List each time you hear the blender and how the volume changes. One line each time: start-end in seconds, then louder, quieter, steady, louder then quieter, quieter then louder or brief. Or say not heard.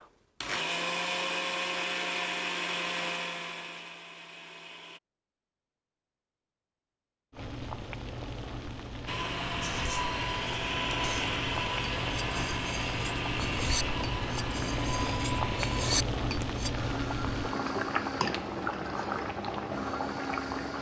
0.0-5.0 quieter
9.1-20.7 quieter.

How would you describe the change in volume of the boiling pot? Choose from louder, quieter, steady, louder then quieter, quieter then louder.
louder.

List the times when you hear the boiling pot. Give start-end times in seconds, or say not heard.
7.3-20.7.